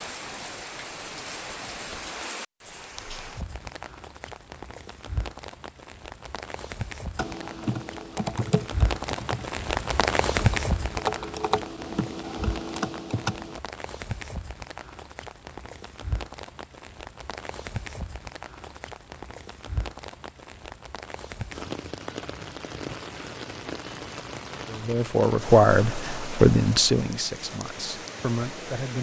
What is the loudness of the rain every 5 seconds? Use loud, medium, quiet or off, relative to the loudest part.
medium, loud, loud, medium, medium, medium.